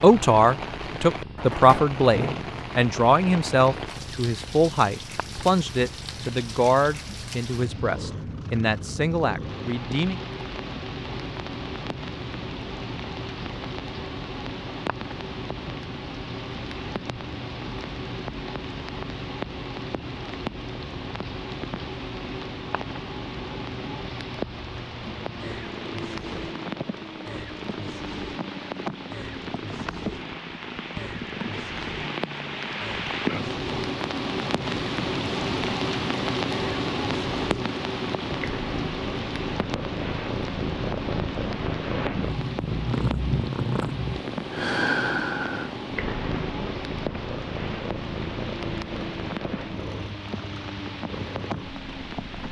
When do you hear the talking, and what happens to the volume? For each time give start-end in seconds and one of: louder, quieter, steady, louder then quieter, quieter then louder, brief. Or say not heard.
0.0-10.2 quieter.